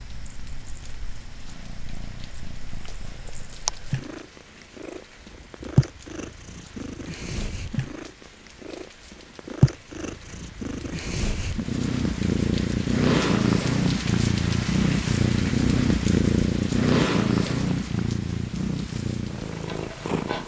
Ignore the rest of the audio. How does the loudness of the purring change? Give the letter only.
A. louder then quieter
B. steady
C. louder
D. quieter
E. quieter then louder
C.